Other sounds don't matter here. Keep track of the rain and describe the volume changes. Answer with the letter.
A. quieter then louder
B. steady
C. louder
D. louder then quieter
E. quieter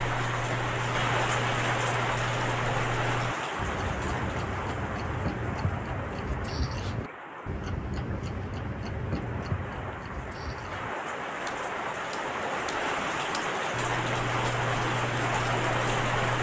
A.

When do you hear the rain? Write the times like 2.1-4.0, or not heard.
0.0-16.3.